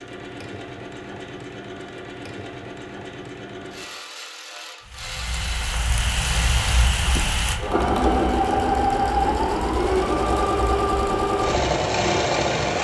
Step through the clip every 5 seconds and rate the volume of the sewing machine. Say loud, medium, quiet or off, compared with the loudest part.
quiet, loud, loud.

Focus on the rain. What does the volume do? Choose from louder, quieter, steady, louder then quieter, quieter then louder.
quieter.